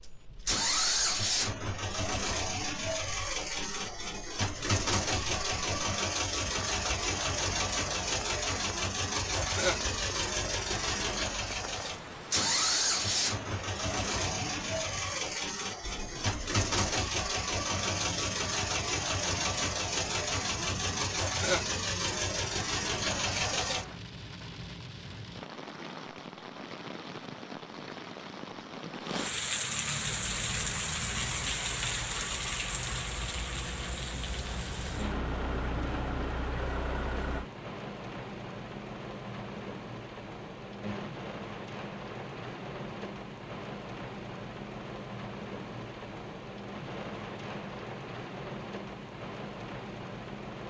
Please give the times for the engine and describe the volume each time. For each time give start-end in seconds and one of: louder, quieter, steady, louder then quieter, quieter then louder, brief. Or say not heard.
0.5-24.0 steady
30.1-37.5 louder.